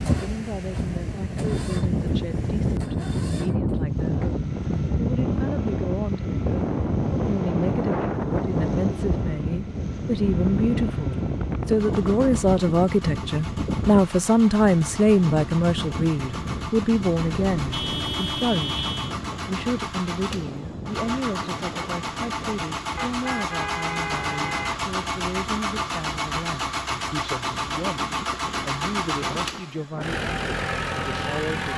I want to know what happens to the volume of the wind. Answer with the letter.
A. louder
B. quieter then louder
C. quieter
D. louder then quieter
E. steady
C.